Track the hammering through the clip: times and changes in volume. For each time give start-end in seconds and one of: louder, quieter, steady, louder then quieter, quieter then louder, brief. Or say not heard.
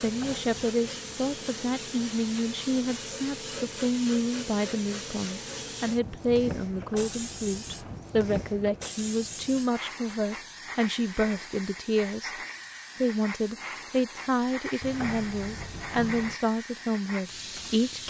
not heard.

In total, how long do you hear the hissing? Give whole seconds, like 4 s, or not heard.
18 s.